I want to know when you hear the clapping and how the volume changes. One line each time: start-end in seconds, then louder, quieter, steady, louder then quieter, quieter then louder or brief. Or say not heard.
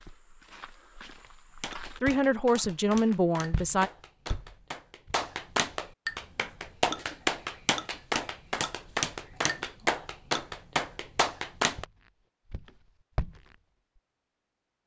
1.6-11.8 louder.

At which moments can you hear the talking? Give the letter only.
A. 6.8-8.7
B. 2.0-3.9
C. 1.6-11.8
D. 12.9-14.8
B.